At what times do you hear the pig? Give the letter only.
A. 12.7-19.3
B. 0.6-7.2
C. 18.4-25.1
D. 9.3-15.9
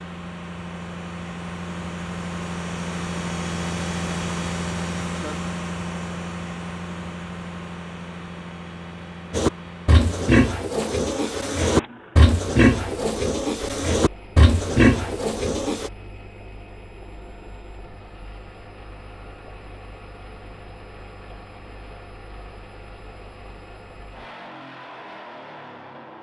D.